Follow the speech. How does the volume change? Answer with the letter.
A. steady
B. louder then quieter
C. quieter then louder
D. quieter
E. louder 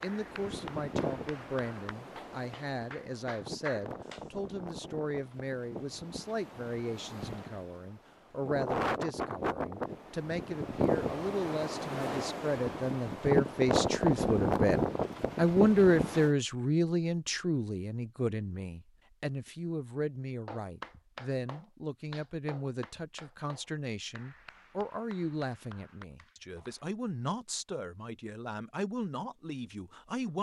B.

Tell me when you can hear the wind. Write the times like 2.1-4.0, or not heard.
0.0-16.3.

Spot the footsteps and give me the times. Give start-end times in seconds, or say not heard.
not heard.